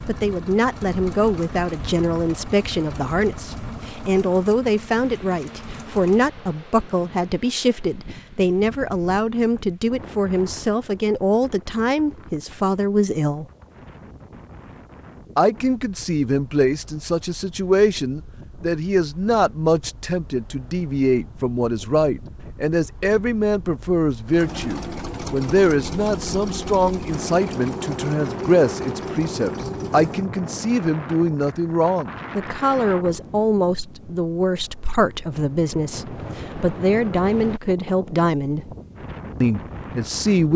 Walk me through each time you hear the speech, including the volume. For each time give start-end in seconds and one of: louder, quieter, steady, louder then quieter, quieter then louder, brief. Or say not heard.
0.1-13.4 steady
15.3-38.7 steady
39.4-40.5 brief.